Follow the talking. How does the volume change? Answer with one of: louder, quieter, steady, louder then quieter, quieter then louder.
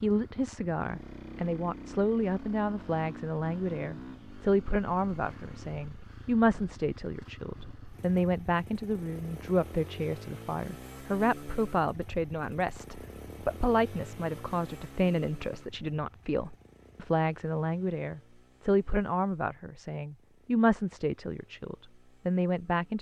steady.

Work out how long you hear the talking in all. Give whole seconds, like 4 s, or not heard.
23 s.